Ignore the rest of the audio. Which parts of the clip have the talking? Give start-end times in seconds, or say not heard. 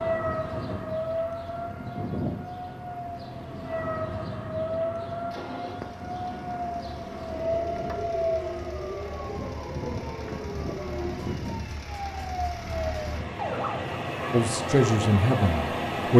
14.3-16.1.